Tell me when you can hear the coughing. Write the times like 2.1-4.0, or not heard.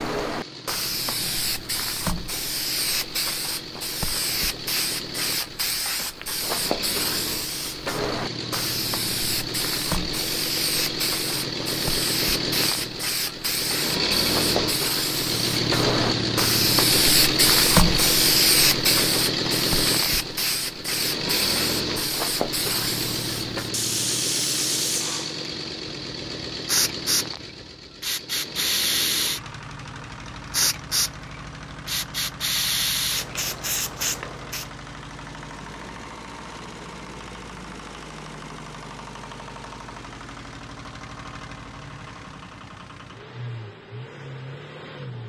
not heard.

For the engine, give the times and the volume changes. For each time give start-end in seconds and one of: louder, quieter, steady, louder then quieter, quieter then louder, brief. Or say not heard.
0.0-45.2 louder then quieter.